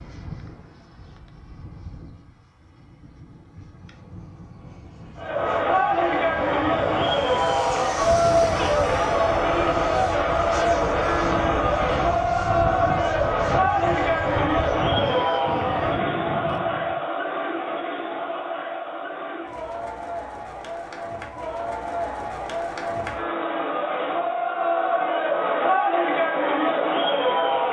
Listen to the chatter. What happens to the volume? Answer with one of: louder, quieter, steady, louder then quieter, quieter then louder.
quieter then louder.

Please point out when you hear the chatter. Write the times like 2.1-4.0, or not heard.
5.2-27.6.